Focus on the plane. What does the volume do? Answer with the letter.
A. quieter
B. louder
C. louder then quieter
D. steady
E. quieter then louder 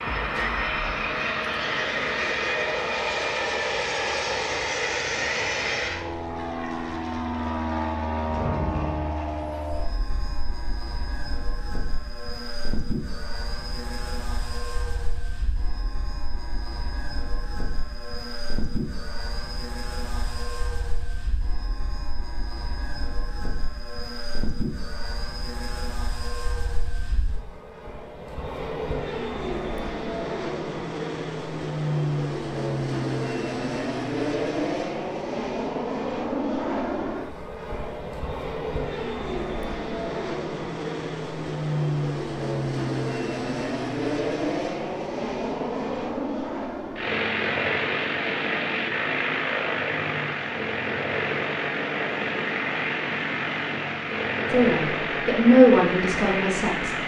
E.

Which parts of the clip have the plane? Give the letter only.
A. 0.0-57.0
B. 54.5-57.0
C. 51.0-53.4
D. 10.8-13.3
A.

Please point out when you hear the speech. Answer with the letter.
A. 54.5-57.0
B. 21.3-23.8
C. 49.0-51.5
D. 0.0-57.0
A.